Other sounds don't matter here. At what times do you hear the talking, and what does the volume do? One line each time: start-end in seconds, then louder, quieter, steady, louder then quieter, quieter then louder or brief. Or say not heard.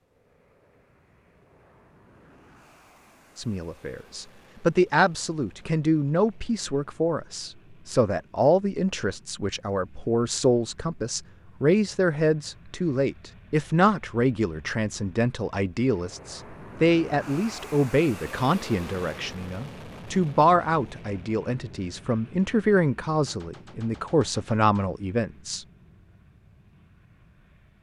3.4-25.6 steady.